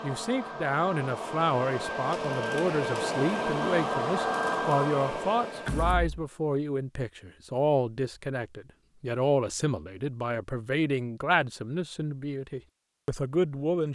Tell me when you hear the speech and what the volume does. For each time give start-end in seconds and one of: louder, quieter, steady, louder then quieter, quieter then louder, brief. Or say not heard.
0.0-13.9 steady.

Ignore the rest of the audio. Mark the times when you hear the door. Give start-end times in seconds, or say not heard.
5.7-6.2.